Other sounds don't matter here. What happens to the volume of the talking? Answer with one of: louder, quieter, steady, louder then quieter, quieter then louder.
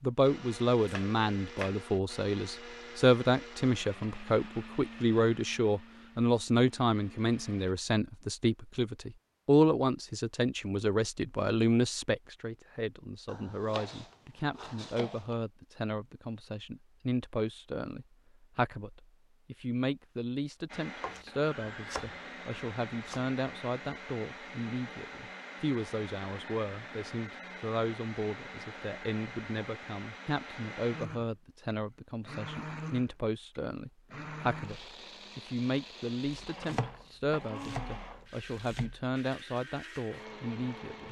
quieter.